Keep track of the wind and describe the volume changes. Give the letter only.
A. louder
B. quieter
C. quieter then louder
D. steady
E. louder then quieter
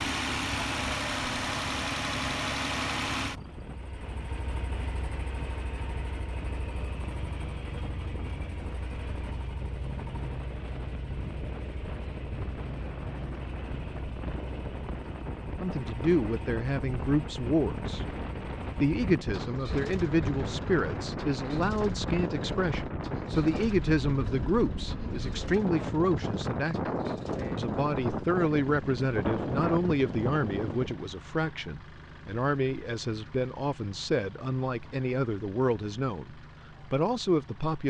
A.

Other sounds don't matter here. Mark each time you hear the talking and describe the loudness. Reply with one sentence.
The talking can be heard briefly from 15.6 to 18.1 s; from 18.8 to 26.9 s, at a steady volume; and from 27.6 to 37.8 s, at a steady volume.